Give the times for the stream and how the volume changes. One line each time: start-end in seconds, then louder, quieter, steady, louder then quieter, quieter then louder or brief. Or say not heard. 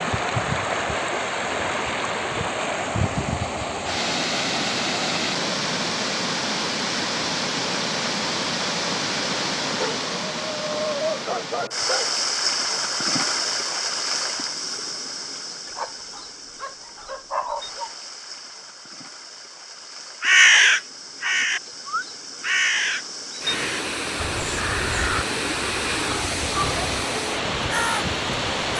0.0-28.7 quieter then louder.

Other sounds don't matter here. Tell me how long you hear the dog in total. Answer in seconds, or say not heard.
5 s.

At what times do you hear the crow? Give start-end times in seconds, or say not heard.
20.2-28.7.